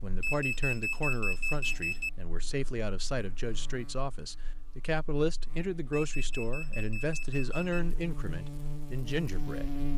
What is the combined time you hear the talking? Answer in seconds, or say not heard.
10 s.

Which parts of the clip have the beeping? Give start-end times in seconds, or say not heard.
0.2-2.1, 5.9-7.8.